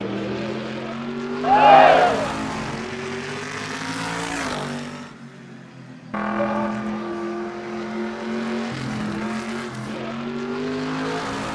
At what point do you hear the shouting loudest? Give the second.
2 s.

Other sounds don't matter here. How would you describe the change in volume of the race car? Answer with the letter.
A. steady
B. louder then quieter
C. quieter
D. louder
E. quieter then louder
A.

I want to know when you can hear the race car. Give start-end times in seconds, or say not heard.
0.0-11.5.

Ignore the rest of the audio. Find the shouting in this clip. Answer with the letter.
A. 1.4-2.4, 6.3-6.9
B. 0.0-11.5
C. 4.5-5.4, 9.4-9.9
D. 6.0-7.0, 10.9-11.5
A.